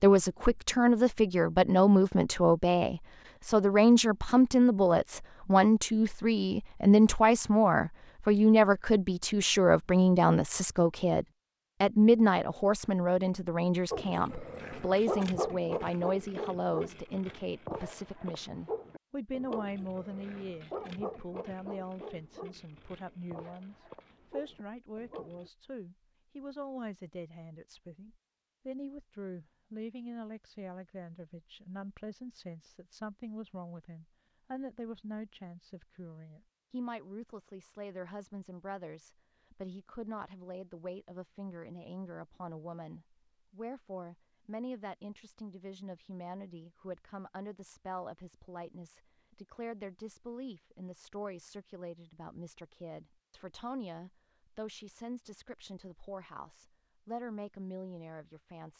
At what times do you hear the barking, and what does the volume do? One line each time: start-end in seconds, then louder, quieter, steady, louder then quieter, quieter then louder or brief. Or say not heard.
13.9-25.5 quieter.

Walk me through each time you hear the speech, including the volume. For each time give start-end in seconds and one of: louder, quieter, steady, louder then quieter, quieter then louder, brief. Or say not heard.
0.0-58.7 quieter.